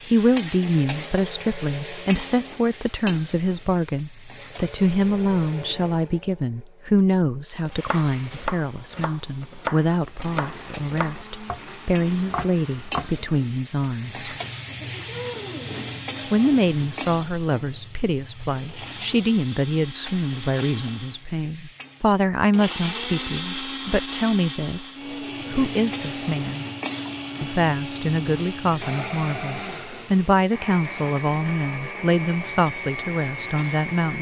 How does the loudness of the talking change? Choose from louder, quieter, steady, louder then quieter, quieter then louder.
steady.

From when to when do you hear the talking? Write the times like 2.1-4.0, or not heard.
0.0-14.3, 16.3-26.6, 27.4-34.1.